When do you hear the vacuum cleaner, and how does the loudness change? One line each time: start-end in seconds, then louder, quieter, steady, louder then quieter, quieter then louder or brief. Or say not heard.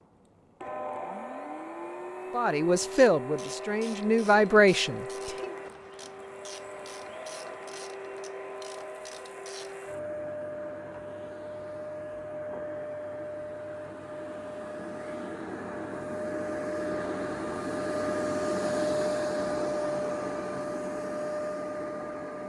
0.0-22.4 louder.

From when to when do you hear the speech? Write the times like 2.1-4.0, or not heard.
2.3-5.5.